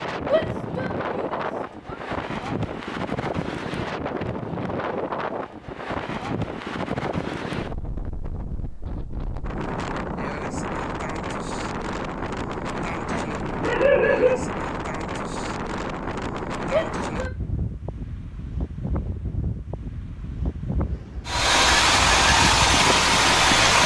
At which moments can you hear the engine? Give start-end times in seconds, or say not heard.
21.2-23.8.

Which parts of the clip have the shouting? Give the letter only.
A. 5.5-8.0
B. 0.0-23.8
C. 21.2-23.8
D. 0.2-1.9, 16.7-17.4
D.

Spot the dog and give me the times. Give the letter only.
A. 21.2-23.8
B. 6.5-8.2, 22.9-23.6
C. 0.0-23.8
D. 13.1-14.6
D.